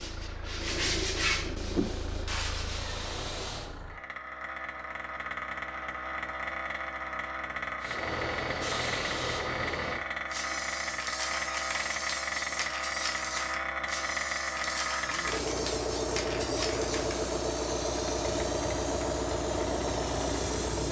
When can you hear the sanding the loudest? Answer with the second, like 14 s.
1 s.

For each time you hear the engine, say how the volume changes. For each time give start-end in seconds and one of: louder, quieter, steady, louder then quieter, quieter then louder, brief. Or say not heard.
0.0-20.8 louder.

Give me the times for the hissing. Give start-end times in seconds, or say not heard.
1.6-3.8, 7.8-20.8.